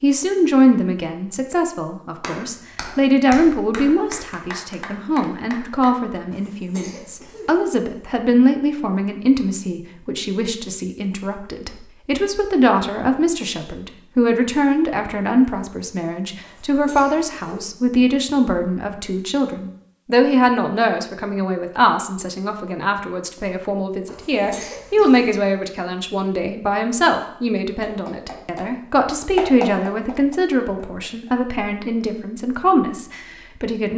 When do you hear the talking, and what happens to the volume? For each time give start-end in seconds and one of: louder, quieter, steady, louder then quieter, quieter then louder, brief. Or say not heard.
0.0-33.9 steady.